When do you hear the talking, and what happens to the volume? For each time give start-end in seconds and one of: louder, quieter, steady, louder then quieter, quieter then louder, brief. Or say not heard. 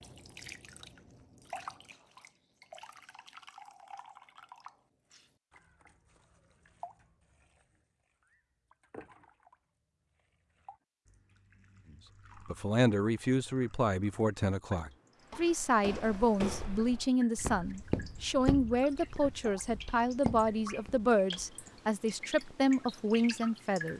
12.4-23.9 steady.